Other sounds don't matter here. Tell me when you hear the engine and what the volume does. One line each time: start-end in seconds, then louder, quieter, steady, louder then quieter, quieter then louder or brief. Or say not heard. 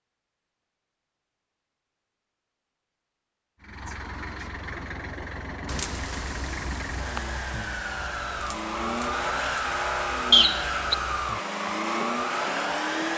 3.6-13.1 louder.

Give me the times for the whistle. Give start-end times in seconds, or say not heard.
10.3-10.9.